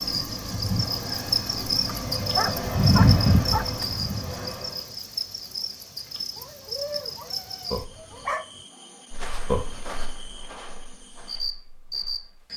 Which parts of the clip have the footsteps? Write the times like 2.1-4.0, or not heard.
9.1-12.5.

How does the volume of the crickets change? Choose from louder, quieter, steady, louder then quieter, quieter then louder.
quieter.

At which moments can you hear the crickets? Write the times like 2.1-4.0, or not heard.
0.0-12.5.